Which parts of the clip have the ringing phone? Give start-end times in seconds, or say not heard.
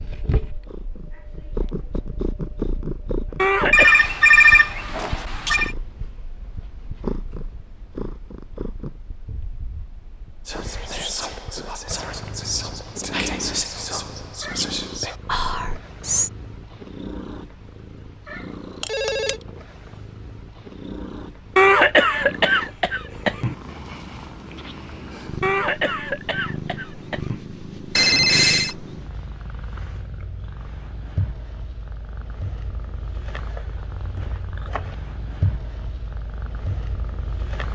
3.7-5.7, 18.8-19.4, 27.9-28.8.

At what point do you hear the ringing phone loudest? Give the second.
4 s.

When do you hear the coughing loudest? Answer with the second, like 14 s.
22 s.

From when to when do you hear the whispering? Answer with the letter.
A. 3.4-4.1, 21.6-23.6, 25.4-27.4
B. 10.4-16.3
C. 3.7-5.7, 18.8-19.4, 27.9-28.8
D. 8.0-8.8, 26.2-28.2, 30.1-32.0
B.